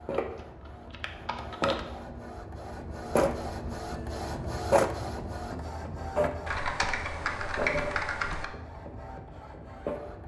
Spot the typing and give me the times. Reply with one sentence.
The typing can be heard from 0.1 to 1.8 s and from 6.5 to 8.4 s.